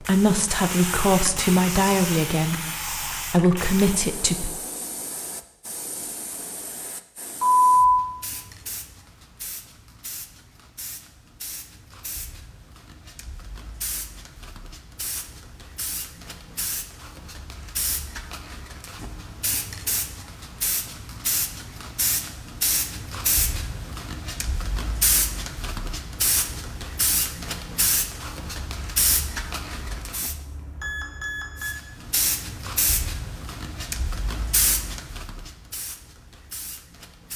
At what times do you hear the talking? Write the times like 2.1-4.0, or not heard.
0.1-4.5.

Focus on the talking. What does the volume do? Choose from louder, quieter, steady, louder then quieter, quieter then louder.
quieter then louder.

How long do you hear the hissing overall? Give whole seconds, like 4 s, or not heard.
36 s.